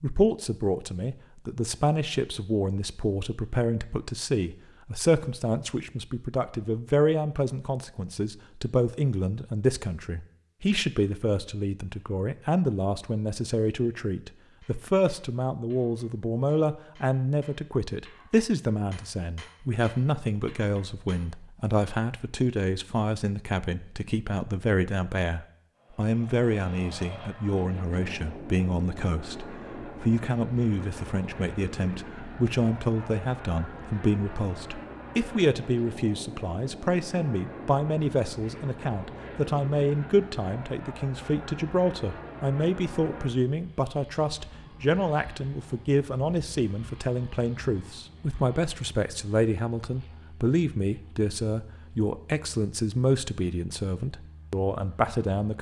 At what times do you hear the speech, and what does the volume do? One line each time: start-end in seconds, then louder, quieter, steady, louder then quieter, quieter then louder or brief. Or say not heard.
0.0-55.5 steady.